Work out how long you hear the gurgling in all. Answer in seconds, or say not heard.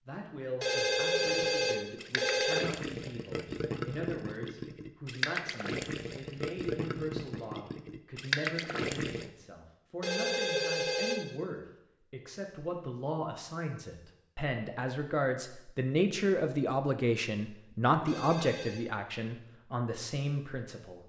8 s.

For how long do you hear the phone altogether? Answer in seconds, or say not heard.
4 s.